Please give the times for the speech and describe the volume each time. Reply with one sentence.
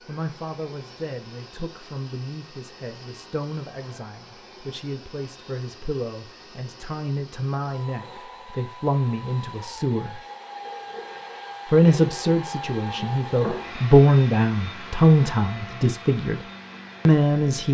The speech can be heard from 0.1 to 10.2 s, getting louder; from 11.7 to 16.4 s, getting louder then quieter; and briefly from 17.1 to 17.6 s.